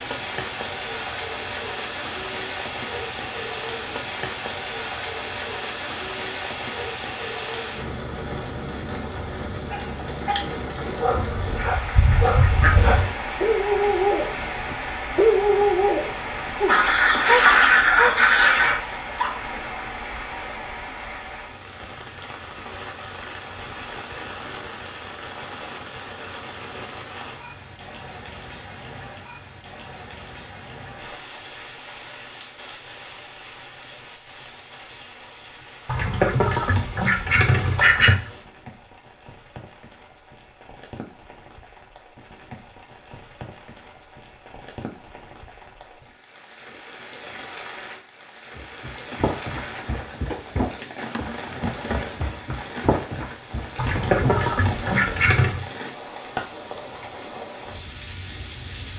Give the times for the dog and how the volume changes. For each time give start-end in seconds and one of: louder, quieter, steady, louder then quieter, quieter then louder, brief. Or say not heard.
9.7-19.8 louder then quieter.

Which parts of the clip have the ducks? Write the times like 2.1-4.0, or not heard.
11.2-13.1, 16.6-18.8, 35.9-38.3, 53.8-55.6.